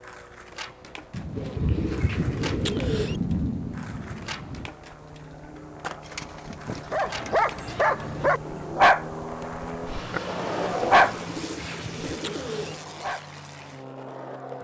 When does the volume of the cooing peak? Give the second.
3 s.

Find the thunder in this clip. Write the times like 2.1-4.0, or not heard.
1.1-4.7.